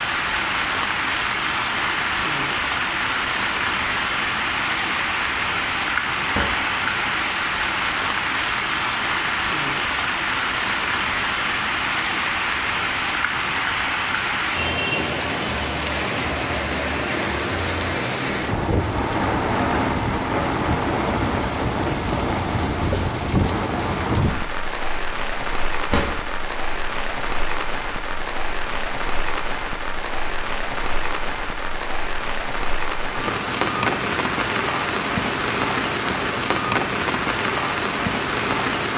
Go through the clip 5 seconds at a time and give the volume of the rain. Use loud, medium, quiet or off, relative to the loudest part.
loud, loud, loud, loud, loud, medium, loud, loud.